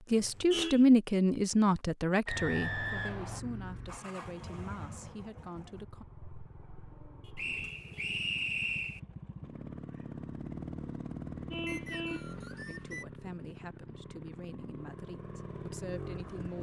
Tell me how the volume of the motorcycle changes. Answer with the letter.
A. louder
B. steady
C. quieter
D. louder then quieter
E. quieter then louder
E.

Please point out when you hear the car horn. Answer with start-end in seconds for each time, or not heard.
0.1-0.8, 7.2-8.2, 11.5-12.3.